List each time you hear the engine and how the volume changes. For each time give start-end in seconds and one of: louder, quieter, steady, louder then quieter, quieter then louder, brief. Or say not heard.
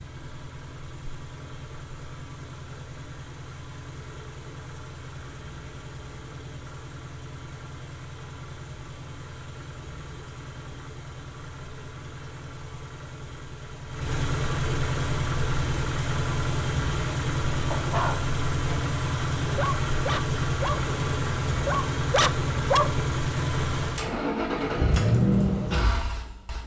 0.0-26.6 louder.